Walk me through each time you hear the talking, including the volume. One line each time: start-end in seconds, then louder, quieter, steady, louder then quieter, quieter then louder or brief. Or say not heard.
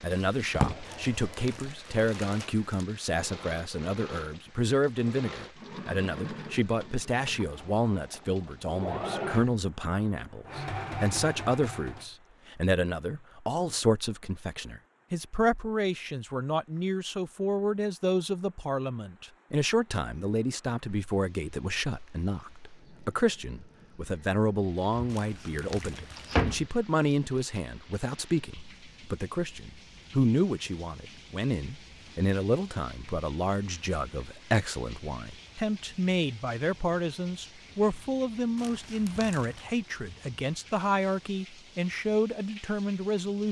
0.0-43.4 steady.